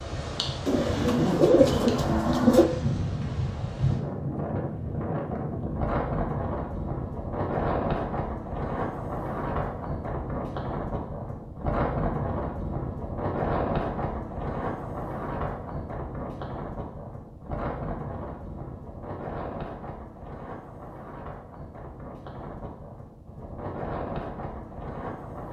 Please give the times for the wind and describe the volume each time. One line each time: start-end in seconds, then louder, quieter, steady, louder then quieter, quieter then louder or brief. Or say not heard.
0.0-25.4 quieter.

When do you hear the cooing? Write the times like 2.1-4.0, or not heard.
0.7-2.6.